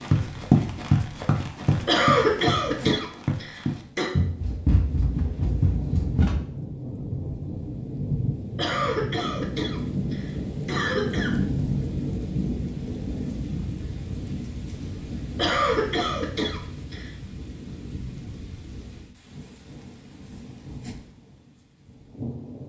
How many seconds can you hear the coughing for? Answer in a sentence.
You can hear the coughing for 7 seconds altogether.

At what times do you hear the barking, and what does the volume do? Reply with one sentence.
The barking can't be heard in this clip.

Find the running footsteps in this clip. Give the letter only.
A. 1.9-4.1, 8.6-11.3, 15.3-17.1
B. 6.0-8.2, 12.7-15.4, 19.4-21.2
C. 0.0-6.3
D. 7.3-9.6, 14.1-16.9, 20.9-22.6
C.